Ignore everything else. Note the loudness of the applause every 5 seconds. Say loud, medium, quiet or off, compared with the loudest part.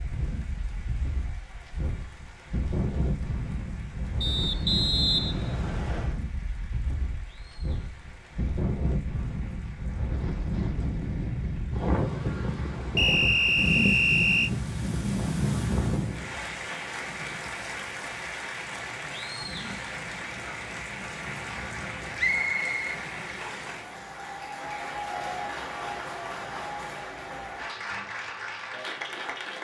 quiet, quiet, quiet, loud, loud, loud.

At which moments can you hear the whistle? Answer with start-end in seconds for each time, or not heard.
4.2-6.2, 12.9-14.5, 22.1-23.7.